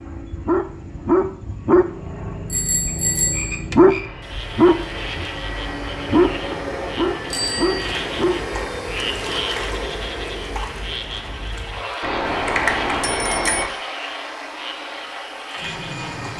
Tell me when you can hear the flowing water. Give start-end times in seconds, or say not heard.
not heard.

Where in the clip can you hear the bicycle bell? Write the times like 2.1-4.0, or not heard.
2.5-3.6, 7.3-7.9, 12.0-13.7.